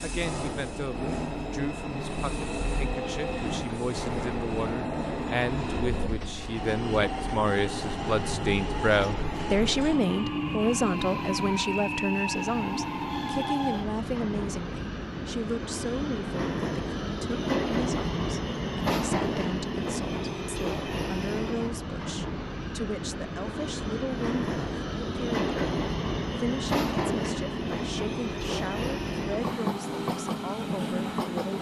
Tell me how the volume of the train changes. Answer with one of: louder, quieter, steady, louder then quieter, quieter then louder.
steady.